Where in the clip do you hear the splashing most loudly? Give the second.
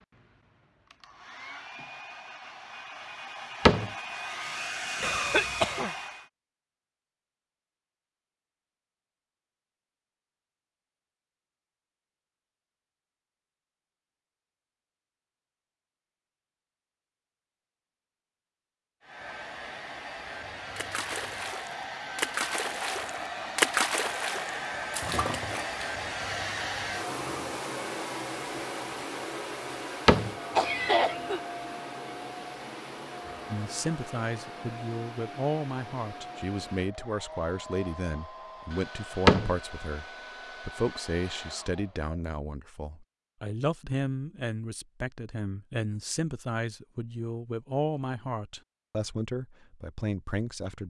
24 s.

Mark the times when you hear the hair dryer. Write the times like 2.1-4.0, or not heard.
0.0-6.3, 19.0-42.1.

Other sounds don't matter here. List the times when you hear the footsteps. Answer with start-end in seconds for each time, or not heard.
not heard.